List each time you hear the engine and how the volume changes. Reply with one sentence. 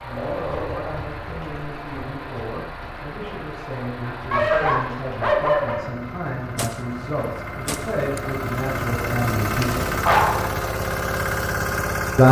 You can hear the engine from 0.0 to 12.2 s, getting louder.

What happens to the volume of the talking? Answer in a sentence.
The loudness of the talking goes up.